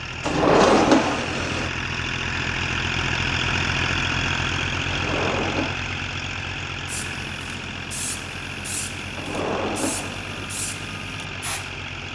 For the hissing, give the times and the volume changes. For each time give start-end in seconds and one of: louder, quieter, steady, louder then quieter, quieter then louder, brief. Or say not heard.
6.8-12.0 steady.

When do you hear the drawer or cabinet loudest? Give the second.
1 s.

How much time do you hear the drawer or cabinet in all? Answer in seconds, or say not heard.
4 s.